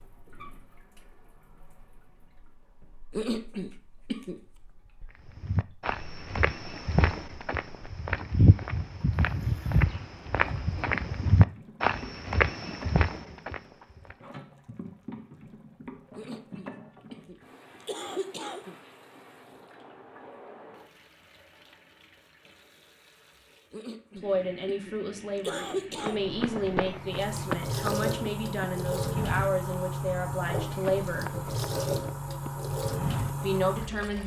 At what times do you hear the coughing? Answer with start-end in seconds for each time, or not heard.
3.1-4.4, 16.1-18.8, 23.7-26.2.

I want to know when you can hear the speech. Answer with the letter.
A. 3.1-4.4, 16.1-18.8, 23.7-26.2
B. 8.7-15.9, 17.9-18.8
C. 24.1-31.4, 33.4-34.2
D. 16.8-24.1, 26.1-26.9
C.